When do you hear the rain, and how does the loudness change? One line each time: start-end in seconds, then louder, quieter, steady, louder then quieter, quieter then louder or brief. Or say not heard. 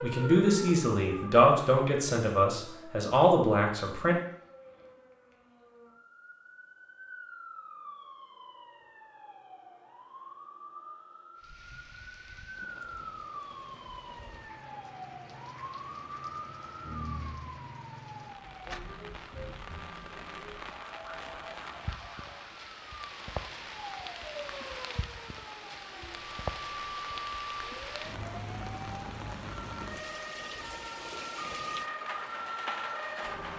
11.3-33.5 louder.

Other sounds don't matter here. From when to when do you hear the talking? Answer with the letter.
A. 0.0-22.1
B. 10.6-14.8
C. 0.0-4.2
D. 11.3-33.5
C.